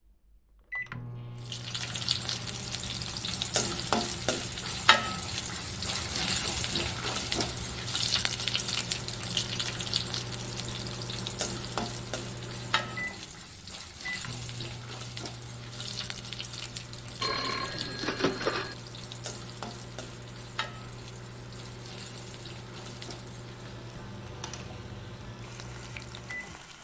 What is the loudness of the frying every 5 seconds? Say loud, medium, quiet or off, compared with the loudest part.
loud, loud, medium, medium, quiet, quiet.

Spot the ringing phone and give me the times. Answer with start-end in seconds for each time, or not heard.
17.2-18.8.